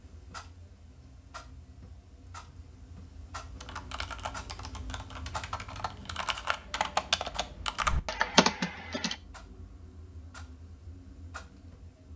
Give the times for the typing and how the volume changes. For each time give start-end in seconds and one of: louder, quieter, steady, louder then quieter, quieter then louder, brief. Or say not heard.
3.5-9.2 louder.